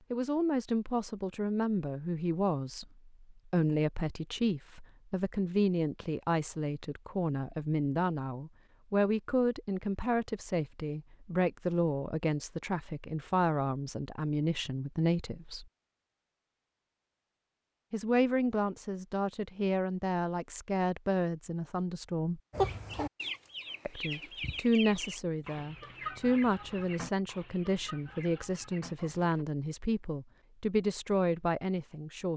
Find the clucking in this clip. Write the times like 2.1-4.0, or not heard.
22.5-29.4.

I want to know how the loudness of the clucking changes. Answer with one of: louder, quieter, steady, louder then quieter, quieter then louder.
quieter.